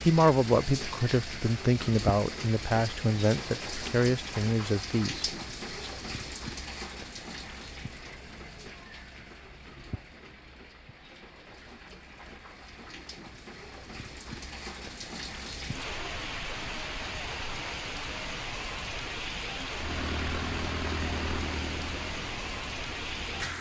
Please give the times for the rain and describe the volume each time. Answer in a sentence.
You can hear the rain from 0.0 to 23.5 s, getting quieter then louder.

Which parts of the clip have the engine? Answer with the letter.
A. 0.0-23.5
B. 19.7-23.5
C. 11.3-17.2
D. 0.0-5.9
B.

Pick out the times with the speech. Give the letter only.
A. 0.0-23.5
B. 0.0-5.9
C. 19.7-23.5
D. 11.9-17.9
B.